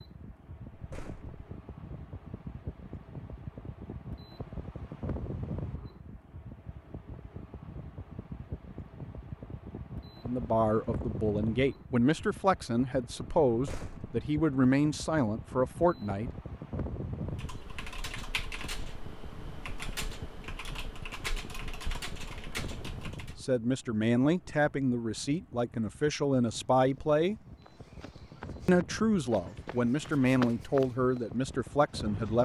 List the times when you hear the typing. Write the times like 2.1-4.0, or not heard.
17.2-23.4.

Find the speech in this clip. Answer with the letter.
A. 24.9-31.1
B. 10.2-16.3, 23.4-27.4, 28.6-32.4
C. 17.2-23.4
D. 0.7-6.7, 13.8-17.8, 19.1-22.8
B.